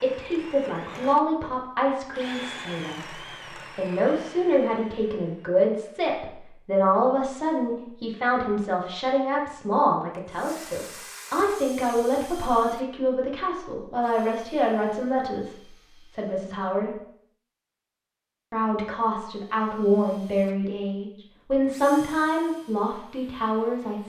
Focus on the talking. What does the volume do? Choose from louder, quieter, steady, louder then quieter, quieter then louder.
steady.